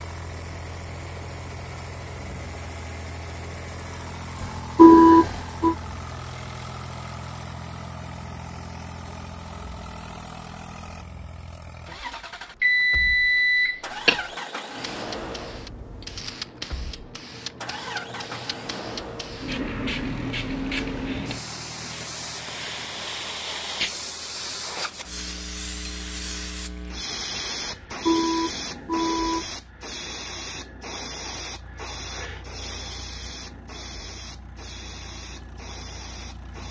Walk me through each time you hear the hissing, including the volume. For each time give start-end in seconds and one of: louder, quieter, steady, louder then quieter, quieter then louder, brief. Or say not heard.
14.8-36.6 louder then quieter.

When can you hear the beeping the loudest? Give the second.
5 s.